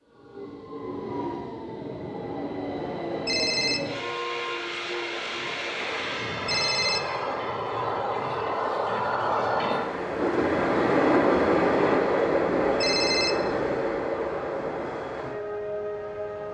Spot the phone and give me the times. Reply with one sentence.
You can hear the phone from 3.2 to 3.8 s, from 6.5 to 7.0 s and from 12.8 to 13.3 s.